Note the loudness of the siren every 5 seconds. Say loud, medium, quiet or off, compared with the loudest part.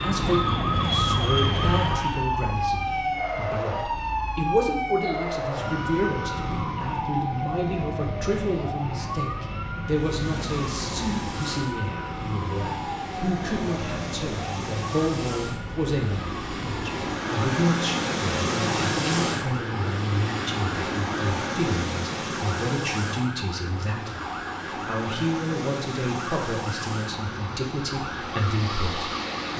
loud, loud, medium, medium, medium, medium.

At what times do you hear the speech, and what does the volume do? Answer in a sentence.
You can hear the speech from 0.0 to 29.5 s, at a steady volume.